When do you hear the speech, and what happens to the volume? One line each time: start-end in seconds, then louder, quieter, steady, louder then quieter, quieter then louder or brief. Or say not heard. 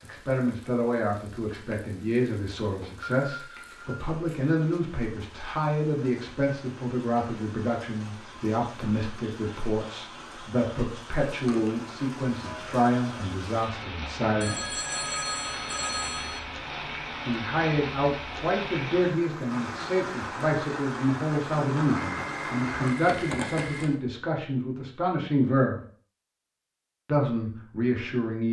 0.0-14.8 steady
17.2-25.8 steady
27.1-28.4 brief.